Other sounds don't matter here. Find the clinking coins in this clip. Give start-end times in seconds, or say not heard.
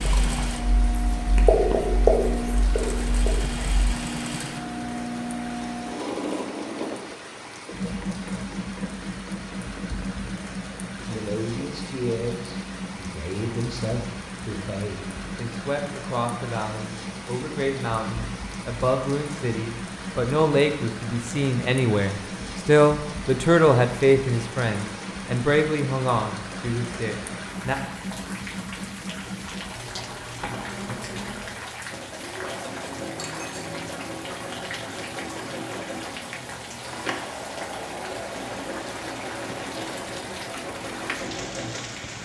33.0-33.7.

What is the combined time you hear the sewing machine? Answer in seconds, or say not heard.
42 s.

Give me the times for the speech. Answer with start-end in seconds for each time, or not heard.
11.0-27.8.